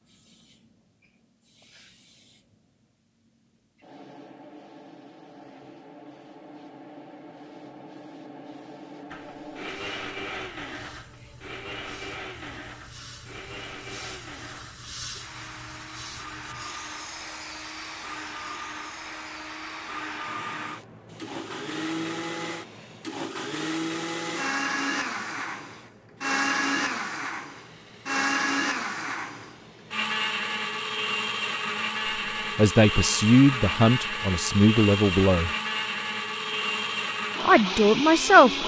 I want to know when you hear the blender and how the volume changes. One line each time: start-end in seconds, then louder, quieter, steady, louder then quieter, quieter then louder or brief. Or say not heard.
9.1-38.6 louder.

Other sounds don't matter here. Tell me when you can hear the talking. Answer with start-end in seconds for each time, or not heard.
32.5-35.5, 37.5-38.6.